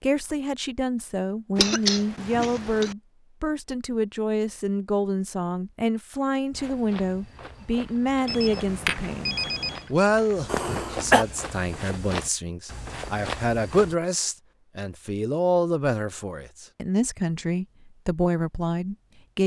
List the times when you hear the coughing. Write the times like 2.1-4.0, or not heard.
1.6-3.0, 10.4-11.2.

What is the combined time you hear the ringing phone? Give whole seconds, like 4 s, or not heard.
2 s.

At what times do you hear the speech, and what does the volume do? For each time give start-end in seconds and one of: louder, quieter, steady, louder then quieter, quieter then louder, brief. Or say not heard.
0.0-19.4 steady.